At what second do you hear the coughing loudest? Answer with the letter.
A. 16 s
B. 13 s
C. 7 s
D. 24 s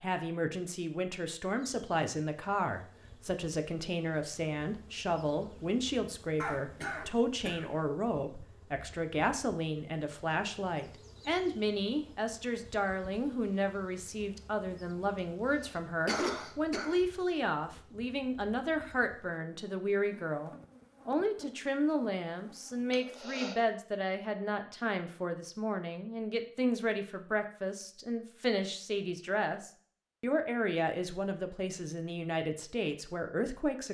A.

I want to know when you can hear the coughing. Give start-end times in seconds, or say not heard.
6.4-7.7, 15.2-17.0, 22.9-23.6.